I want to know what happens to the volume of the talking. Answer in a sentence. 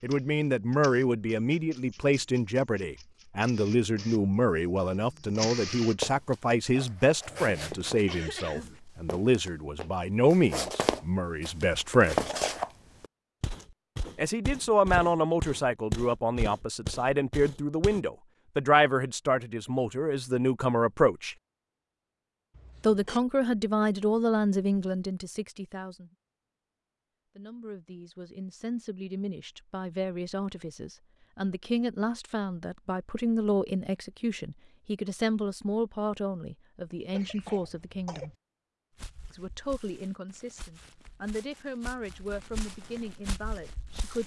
The volume of the talking goes down.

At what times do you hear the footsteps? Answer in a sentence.
The footsteps can be heard from 6.0 to 18.0 s and from 39.0 to 44.2 s.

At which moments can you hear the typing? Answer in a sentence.
The typing can't be heard in this clip.